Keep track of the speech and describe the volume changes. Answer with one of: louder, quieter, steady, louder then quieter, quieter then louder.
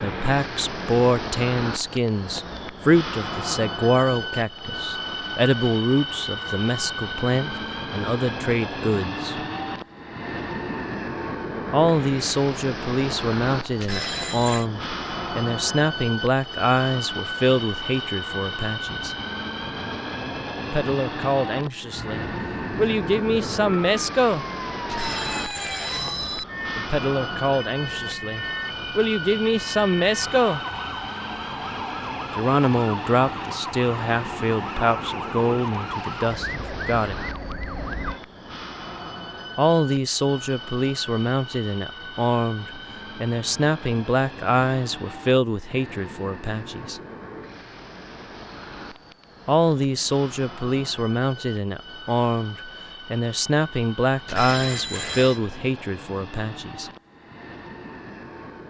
steady.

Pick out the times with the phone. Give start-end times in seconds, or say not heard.
13.8-14.7, 24.9-26.4, 54.2-55.4.